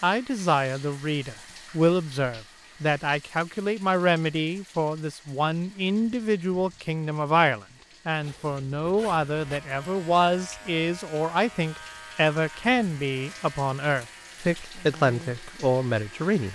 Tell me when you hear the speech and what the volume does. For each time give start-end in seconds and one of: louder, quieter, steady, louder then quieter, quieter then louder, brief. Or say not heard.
0.0-16.4 steady.